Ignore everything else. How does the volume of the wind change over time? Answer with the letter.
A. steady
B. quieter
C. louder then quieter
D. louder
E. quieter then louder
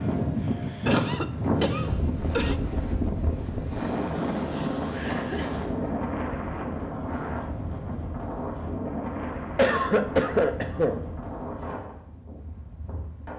B.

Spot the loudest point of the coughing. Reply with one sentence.
The volume of the coughing peaks at 10 seconds.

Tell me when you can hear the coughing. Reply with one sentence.
You can hear the coughing from 0.8 to 2.5 s, from 5.0 to 5.5 s and from 9.6 to 11.0 s.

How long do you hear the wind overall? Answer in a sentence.
You can hear the wind for 13 seconds altogether.